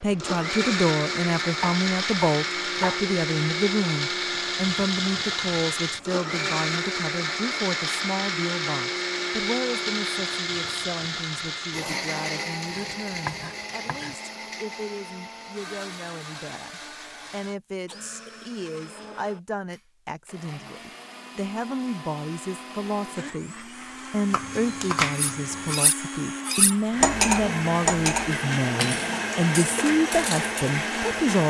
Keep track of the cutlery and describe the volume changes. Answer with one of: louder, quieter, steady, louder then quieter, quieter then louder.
louder then quieter.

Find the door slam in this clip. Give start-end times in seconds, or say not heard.
not heard.